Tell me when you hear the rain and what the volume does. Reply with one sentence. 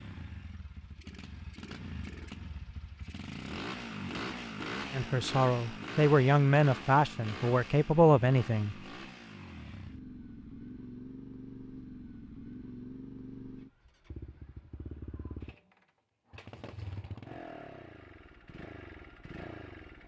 The rain can't be heard in this clip.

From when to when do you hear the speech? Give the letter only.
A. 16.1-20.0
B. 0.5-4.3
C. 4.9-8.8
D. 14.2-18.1
C.